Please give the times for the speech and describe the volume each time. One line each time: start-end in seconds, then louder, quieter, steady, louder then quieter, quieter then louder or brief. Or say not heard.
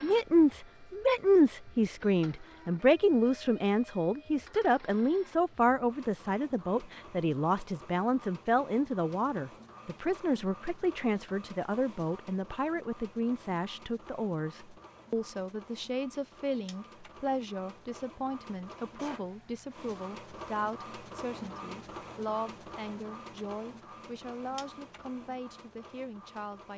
0.0-26.7 quieter.